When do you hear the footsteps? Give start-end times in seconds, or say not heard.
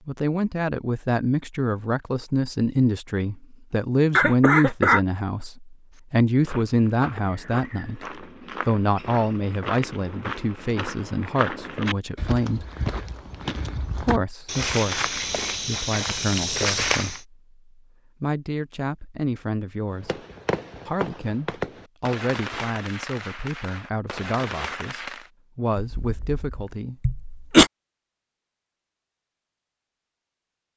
5.9-17.2.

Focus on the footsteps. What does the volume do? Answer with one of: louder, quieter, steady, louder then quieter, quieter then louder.
louder.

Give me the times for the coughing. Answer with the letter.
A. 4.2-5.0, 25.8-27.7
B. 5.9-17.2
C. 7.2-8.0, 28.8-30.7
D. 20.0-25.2
A.